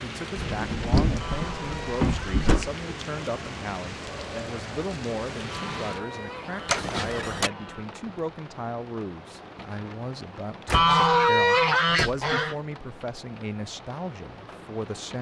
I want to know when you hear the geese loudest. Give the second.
11 s.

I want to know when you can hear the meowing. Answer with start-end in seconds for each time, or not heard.
not heard.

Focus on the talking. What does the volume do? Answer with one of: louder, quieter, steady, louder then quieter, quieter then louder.
steady.